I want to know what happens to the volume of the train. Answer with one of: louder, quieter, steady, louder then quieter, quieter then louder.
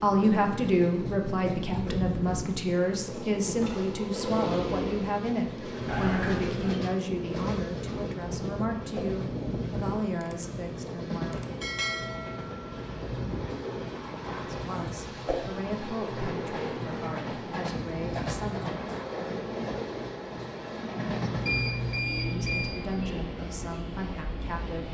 steady.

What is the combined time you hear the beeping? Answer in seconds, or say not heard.
2 s.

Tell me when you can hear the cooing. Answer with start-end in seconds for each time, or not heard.
not heard.